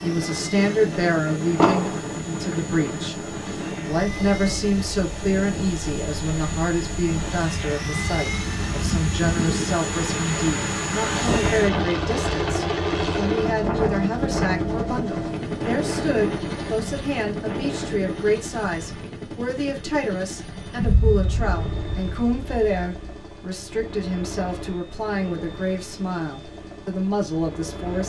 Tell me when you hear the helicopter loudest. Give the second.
13 s.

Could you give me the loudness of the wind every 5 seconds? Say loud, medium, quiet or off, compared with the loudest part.
loud, loud, loud, loud, off, off.